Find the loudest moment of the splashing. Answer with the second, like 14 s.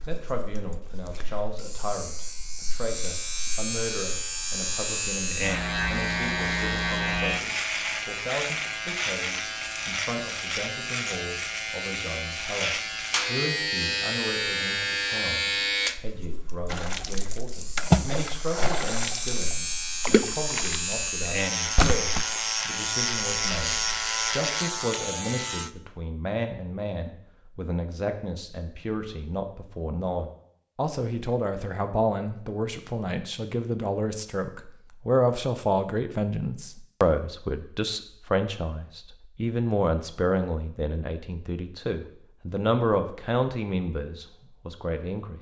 18 s.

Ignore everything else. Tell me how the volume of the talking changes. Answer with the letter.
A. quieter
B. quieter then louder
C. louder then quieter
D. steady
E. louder
E.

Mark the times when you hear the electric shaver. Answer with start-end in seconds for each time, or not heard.
0.0-25.7.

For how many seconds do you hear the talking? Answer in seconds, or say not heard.
45 s.